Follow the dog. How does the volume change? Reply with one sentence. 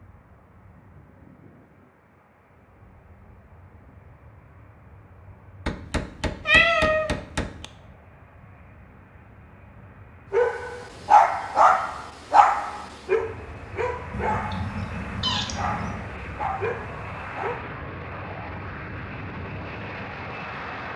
The volume of the dog goes down.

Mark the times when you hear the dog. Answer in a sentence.
You can hear the dog from 10.3 to 17.6 s.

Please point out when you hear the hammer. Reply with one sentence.
The hammer can be heard from 5.7 to 7.7 s.